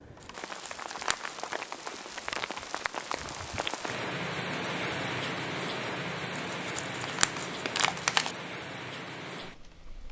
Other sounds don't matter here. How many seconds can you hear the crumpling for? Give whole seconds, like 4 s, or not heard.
3 s.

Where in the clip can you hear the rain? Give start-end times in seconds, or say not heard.
0.0-10.0.